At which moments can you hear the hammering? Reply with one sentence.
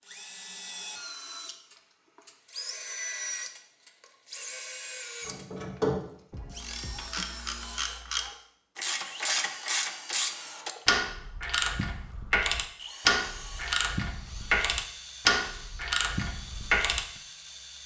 You can't hear the hammering here.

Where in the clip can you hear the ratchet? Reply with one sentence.
You can hear the ratchet from 5.2 to 17.1 s.